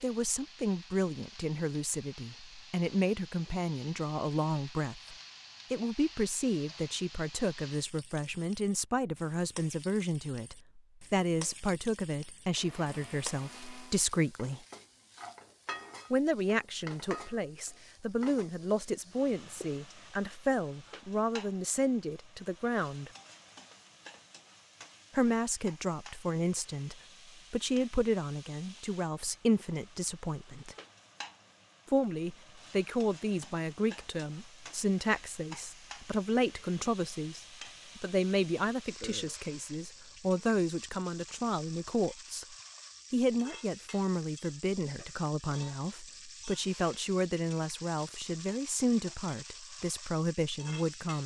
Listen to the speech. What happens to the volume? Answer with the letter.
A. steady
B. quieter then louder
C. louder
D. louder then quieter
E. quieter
A.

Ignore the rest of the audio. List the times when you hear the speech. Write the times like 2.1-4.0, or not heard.
0.0-14.6, 16.1-23.1, 25.1-30.8, 31.9-51.2.